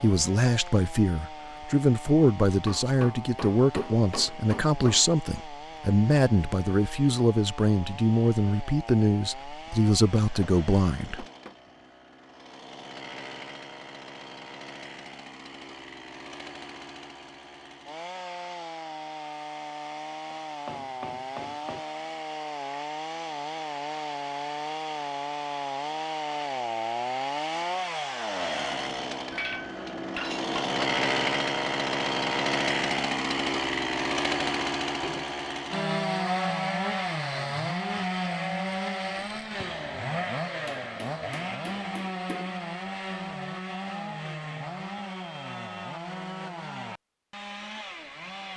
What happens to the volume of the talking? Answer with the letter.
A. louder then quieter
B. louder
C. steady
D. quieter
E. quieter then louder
C.